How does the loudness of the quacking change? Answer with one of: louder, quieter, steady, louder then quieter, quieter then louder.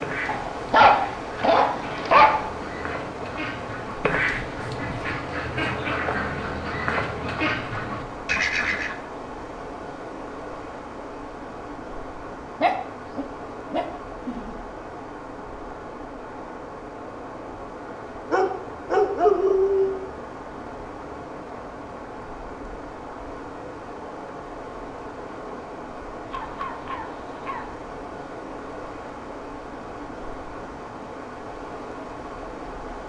louder.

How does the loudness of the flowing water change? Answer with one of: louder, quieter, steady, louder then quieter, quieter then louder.
steady.